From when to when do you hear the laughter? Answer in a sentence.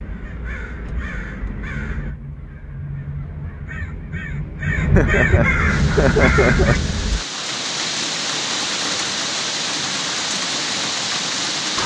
You can hear the laughter from 5.0 to 7.1 s.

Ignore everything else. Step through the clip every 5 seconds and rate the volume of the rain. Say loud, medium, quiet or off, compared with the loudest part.
off, loud, loud.